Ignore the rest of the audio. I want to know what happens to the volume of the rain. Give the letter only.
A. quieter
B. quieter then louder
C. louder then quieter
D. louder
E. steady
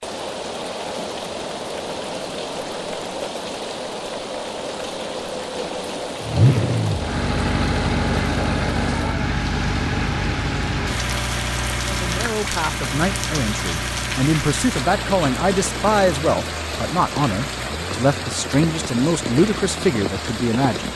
E.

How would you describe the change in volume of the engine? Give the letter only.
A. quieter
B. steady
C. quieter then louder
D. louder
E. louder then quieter
A.